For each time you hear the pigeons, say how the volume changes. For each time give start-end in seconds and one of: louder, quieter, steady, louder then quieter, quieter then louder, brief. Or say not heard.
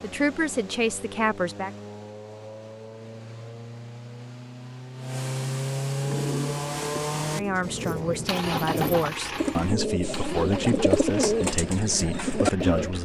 6.0-12.9 louder.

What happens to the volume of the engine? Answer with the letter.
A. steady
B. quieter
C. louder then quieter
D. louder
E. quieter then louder
C.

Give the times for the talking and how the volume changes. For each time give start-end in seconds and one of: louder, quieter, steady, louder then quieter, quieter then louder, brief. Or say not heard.
0.0-1.7 brief
7.3-13.0 steady.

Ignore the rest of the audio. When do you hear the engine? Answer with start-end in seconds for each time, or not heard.
0.0-13.0.